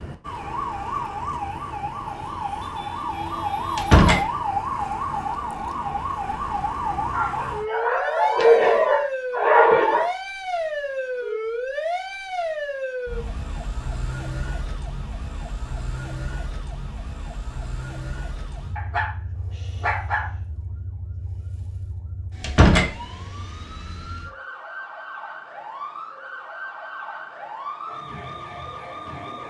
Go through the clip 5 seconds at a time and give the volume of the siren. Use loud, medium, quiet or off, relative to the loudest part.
loud, loud, loud, medium, quiet, medium.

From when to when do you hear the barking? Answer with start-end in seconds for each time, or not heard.
7.1-10.1, 18.8-20.3.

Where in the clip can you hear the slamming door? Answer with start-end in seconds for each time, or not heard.
3.8-4.2, 22.4-22.9.